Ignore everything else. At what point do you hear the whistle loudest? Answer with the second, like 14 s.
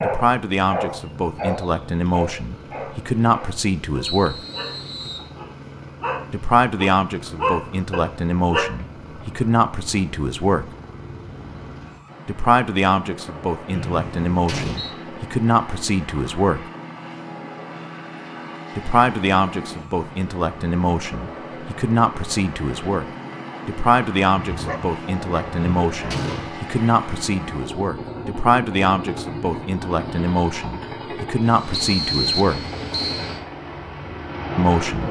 32 s.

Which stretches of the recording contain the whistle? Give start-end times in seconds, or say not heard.
4.0-5.3, 13.7-14.9, 31.7-33.3.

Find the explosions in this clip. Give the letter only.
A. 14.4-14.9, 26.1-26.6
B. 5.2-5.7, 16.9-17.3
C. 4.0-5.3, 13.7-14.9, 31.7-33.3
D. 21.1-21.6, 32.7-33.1
A.